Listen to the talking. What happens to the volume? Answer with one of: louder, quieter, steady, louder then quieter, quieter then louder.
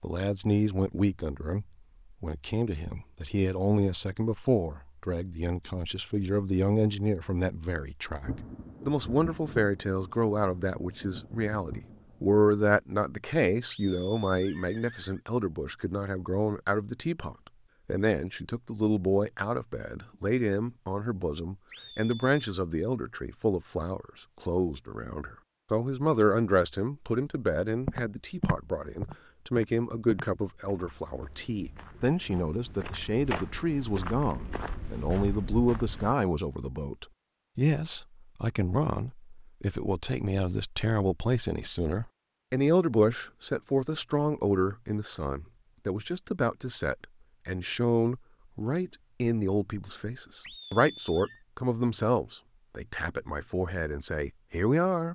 steady.